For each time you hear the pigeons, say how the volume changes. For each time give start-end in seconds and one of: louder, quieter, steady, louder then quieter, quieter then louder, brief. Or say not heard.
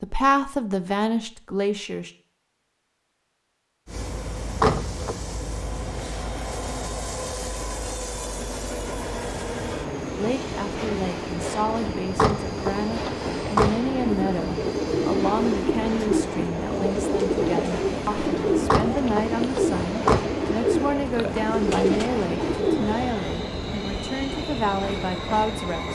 13.9-23.1 steady.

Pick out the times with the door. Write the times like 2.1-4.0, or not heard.
4.5-5.2, 12.1-13.7, 18.6-20.2.